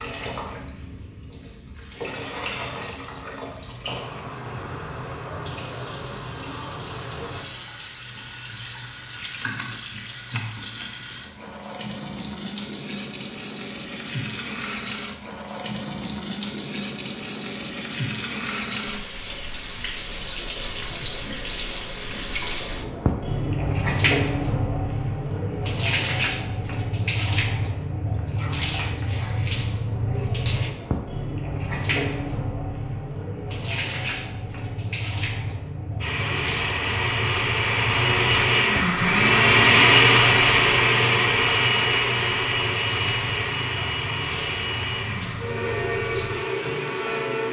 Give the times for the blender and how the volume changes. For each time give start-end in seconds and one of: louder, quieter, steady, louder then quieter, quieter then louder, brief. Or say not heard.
36.0-47.4 louder then quieter.